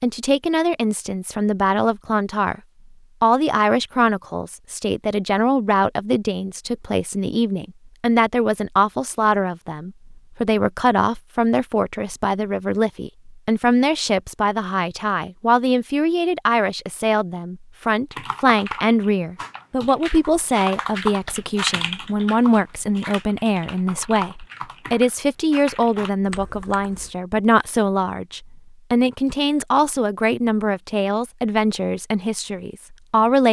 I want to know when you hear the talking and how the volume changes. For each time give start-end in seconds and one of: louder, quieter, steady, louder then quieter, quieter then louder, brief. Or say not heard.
0.0-2.6 brief
3.2-33.4 steady.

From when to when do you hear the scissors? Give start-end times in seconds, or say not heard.
not heard.